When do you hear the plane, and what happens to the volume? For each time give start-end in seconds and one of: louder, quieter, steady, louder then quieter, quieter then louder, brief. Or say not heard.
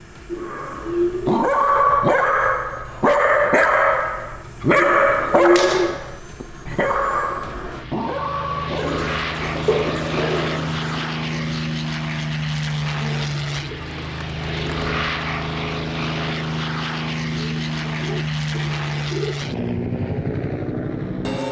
0.0-21.4 louder.